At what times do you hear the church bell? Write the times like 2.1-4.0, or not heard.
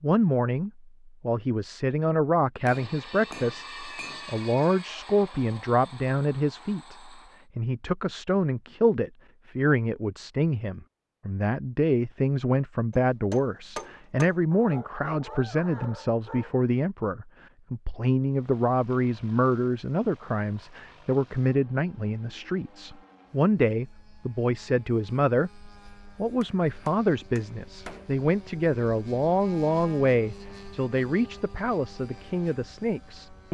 not heard.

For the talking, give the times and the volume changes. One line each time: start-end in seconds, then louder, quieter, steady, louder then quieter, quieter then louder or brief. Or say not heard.
0.0-33.4 steady.